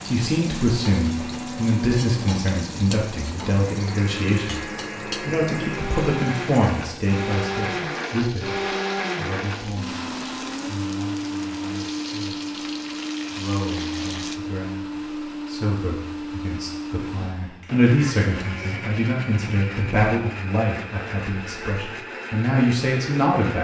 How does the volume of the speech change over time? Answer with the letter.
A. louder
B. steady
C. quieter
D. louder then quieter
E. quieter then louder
E.